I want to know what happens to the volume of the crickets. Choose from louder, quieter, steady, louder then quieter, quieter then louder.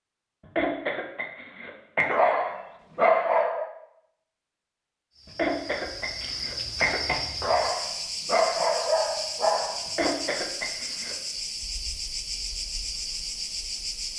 steady.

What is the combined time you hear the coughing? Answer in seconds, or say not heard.
5 s.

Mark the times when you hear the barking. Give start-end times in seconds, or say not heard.
2.1-3.7, 7.4-10.1.